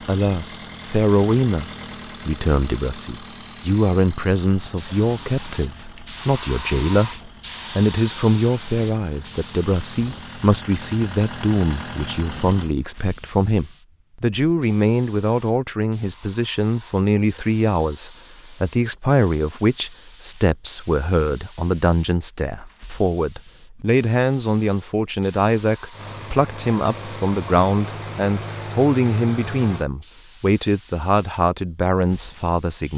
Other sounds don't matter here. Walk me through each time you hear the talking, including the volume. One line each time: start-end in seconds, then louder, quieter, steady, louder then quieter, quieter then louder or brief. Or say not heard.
0.1-32.9 steady.